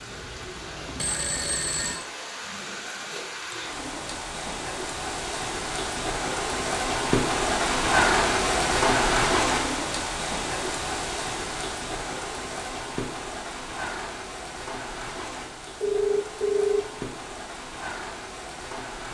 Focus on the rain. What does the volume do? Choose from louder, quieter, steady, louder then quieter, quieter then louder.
louder then quieter.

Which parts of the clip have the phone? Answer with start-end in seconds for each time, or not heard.
0.8-2.0, 15.8-16.9.